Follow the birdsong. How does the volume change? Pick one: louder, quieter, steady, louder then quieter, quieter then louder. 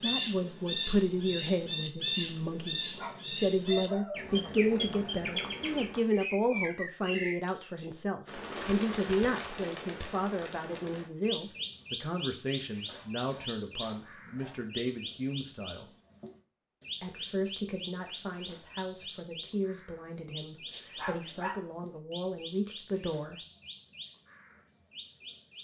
quieter.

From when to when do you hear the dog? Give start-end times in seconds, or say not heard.
2.5-4.3, 12.8-14.7, 20.7-21.6.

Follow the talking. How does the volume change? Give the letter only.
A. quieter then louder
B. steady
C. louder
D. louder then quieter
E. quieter
E.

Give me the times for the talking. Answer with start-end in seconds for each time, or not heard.
0.0-15.9, 17.0-23.4.